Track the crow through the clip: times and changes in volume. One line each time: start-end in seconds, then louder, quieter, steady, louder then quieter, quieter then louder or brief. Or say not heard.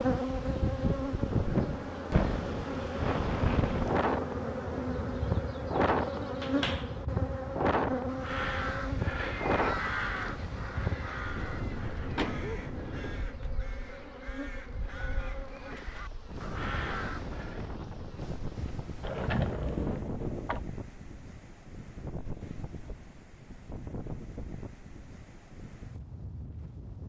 7.9-17.6 quieter then louder.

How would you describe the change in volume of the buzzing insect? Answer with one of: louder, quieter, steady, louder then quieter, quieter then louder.
quieter.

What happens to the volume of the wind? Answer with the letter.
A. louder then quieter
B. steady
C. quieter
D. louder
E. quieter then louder
C.